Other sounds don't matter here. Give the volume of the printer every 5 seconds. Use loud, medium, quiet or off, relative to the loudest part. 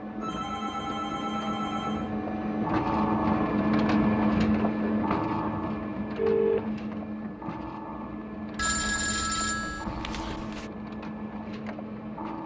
loud, medium, medium.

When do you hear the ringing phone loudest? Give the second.
6 s.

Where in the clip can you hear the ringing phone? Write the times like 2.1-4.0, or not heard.
0.2-2.1, 4.6-6.7, 8.6-10.7.